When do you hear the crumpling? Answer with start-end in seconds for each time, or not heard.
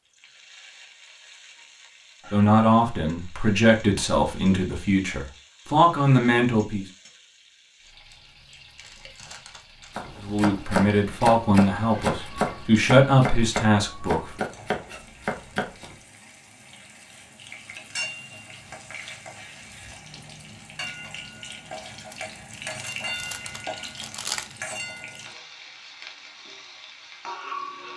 8.1-9.9, 22.1-24.6.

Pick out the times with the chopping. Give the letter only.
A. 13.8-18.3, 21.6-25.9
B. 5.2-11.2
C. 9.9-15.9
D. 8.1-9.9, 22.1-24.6
C.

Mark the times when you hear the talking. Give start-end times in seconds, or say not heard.
2.3-6.8, 10.2-14.4.